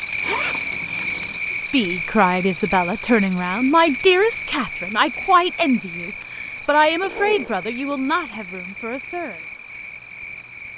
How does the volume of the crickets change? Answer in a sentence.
The volume of the crickets goes down.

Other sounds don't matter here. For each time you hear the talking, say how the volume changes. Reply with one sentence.
The talking can be heard from 1.7 to 9.4 s, getting quieter.